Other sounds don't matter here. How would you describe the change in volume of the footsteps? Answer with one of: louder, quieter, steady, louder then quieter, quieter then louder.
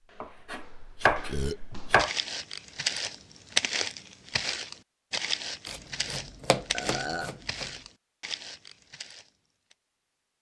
louder then quieter.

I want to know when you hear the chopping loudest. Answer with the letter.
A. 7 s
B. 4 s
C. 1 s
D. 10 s
C.